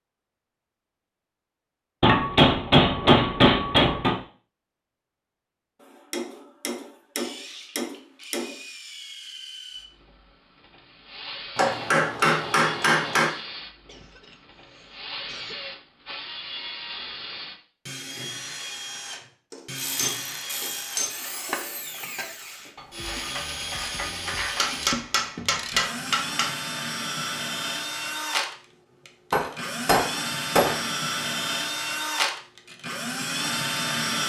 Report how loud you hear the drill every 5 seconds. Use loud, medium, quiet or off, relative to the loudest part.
off, quiet, quiet, medium, medium, loud, loud.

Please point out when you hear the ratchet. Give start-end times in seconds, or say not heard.
19.8-25.9.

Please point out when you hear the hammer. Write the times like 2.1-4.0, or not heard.
2.0-4.2, 6.1-8.5, 11.6-13.3, 19.5-21.2, 24.6-26.5, 29.3-30.8.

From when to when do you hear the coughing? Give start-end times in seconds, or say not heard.
13.8-15.6.